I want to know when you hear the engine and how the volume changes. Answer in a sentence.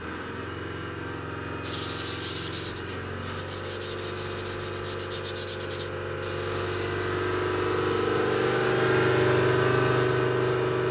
You can hear the engine from 0.0 to 10.8 s, getting louder.